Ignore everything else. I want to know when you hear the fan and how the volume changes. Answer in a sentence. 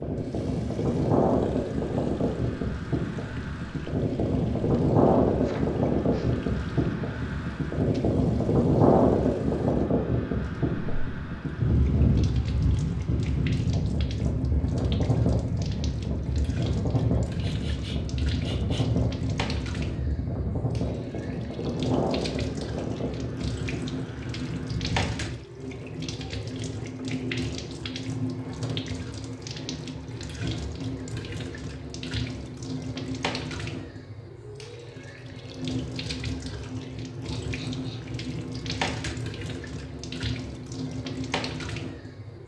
The fan can be heard from 0.0 to 25.4 s, getting quieter.